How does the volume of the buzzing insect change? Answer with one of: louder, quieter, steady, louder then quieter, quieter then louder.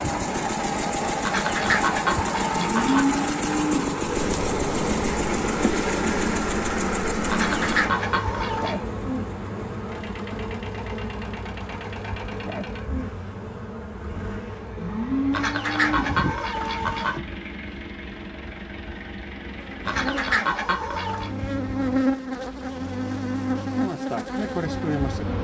quieter then louder.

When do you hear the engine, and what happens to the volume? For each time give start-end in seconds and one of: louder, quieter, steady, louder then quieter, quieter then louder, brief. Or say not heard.
0.0-25.3 quieter.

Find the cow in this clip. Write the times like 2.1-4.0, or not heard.
2.7-3.9, 14.8-16.2.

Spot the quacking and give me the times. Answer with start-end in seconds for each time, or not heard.
1.2-3.1, 7.2-8.8, 15.3-17.2, 19.9-21.3.